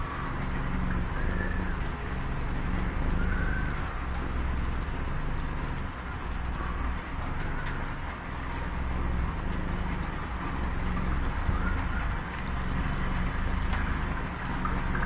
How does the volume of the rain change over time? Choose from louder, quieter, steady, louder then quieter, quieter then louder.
steady.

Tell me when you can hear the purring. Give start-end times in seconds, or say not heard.
0.0-15.0.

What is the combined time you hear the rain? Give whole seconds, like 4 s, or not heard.
15 s.